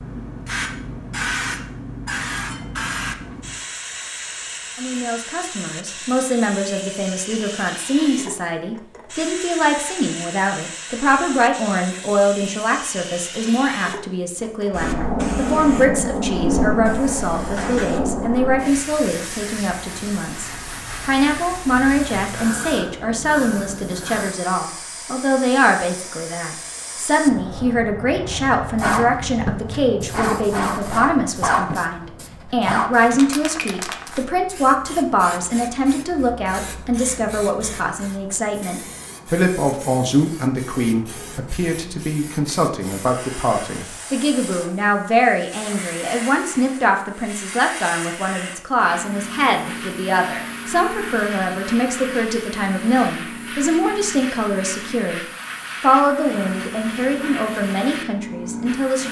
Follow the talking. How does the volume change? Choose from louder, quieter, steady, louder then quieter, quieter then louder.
steady.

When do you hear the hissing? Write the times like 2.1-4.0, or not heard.
0.0-59.0.